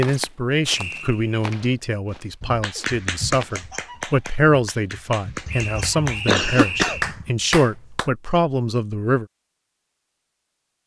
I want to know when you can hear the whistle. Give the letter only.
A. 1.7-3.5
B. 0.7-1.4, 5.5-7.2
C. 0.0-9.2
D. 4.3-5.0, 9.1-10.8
B.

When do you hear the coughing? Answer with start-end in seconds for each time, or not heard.
5.5-7.3.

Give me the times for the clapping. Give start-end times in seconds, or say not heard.
2.4-8.1.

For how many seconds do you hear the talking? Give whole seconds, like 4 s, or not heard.
9 s.